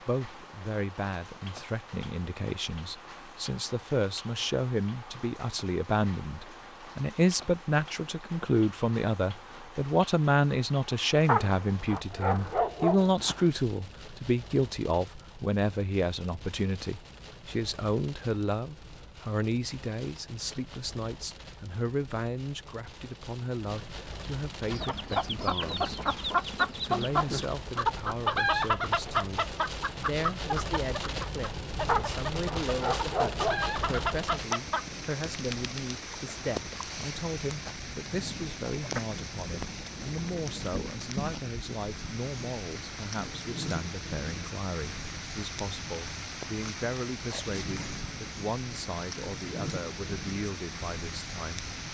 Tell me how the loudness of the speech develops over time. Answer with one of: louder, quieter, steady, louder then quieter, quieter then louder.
quieter.